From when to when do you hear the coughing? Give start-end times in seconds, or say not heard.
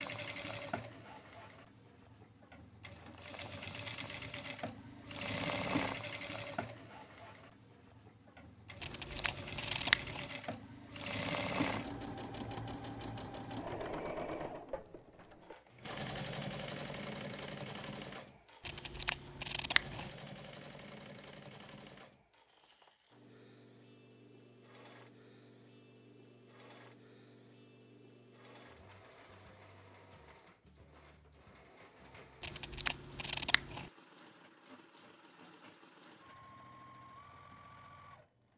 not heard.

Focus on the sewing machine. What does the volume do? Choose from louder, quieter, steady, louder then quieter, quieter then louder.
quieter.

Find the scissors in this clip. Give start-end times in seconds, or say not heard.
8.8-10.2, 18.6-20.1, 32.4-33.9.